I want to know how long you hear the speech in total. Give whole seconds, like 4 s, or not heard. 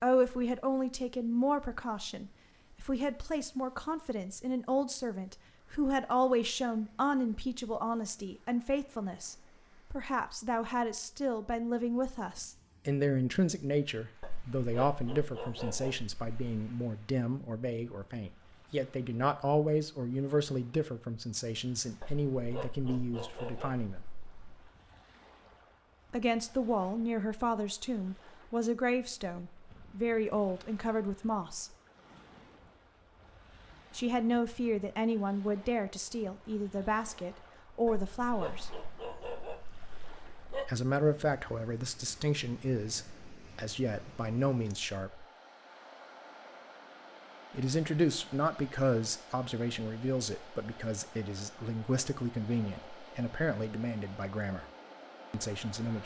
47 s.